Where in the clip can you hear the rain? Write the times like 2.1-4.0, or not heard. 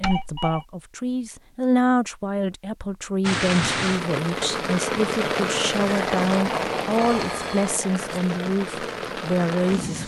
3.2-10.0.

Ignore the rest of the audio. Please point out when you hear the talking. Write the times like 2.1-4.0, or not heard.
0.0-10.0.